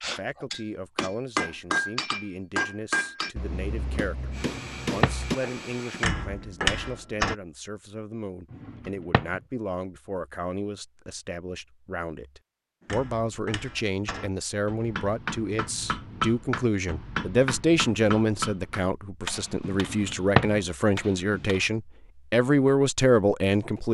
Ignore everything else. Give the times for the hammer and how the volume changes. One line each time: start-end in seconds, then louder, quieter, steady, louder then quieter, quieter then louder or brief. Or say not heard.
0.0-7.3 quieter then louder
12.8-21.7 louder then quieter.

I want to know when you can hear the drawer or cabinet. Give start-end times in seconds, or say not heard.
4.5-5.2, 8.5-9.4, 19.7-20.6.